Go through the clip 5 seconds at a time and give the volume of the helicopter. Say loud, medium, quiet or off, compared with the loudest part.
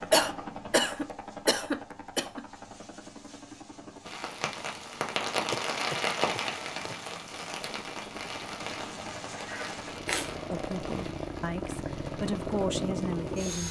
medium, medium, loud.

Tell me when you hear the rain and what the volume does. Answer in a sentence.
The rain can be heard from 4.0 to 13.6 s, getting quieter.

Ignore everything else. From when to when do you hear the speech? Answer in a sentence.
The speech can be heard from 10.5 to 13.6 s.